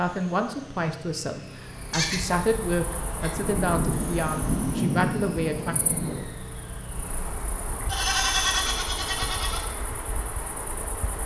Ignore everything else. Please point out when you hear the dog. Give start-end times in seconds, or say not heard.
not heard.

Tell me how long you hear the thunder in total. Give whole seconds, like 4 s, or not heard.
3 s.